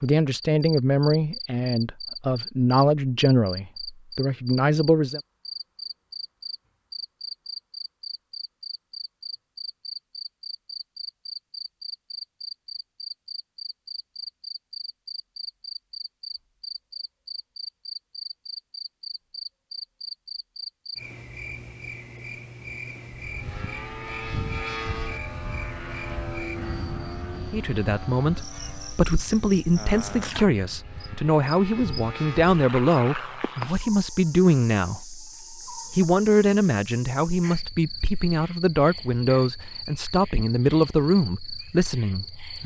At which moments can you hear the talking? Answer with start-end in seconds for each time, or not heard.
0.0-5.2, 27.4-42.6.